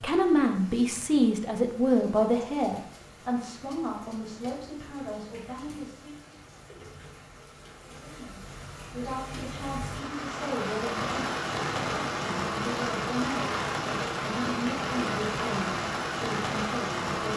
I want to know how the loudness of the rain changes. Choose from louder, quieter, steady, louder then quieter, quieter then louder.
louder.